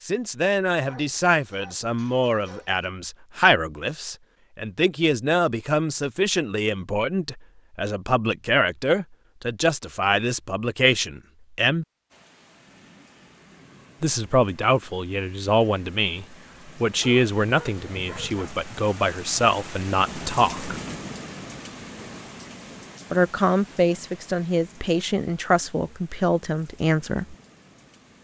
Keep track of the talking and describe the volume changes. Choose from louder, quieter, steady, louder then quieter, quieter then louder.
steady.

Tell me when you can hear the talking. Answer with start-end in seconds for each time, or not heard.
0.0-11.8, 14.0-20.8, 23.1-27.4.